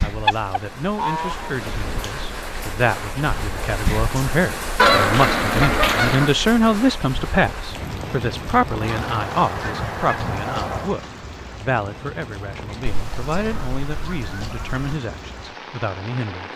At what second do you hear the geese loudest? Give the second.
5 s.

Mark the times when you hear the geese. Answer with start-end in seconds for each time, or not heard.
0.2-2.0, 4.8-6.3, 8.8-10.9, 12.8-14.8.